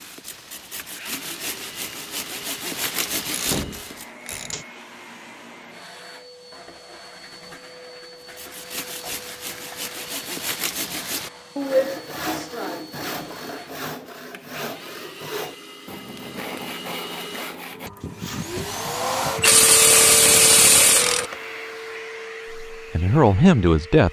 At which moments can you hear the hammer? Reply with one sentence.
The hammer can't be heard in this clip.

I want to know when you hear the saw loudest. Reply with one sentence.
The loudest moment of the saw is at 12 seconds.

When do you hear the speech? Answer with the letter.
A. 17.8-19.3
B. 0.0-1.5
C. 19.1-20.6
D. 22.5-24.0
D.